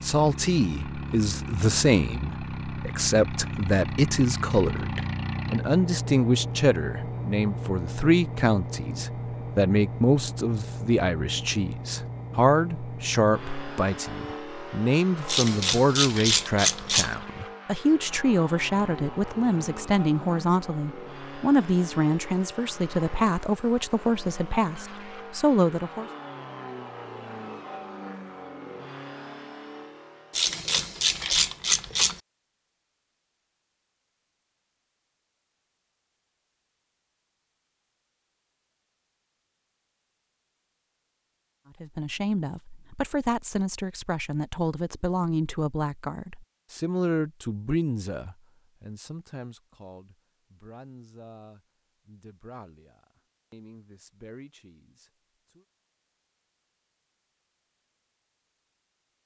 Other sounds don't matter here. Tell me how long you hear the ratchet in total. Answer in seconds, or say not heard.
4 s.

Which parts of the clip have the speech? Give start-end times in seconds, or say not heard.
0.0-26.1, 41.8-55.6.